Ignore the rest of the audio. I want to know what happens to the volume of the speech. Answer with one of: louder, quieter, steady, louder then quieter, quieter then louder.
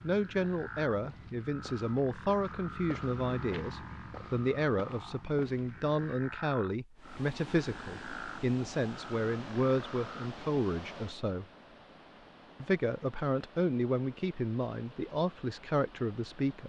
steady.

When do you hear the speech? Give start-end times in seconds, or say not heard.
0.0-11.4, 12.6-16.6.